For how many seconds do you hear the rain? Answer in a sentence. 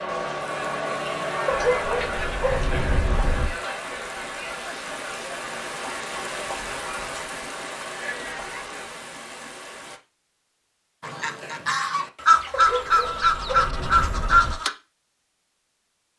The rain can be heard for 10 seconds in total.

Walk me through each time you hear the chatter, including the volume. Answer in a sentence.
You can hear the chatter from 0.0 to 8.9 s, getting quieter.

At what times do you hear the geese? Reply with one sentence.
The geese can be heard from 11.0 to 14.7 s.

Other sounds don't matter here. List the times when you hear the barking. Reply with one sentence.
The barking can be heard from 1.4 to 3.5 s and from 12.5 to 14.6 s.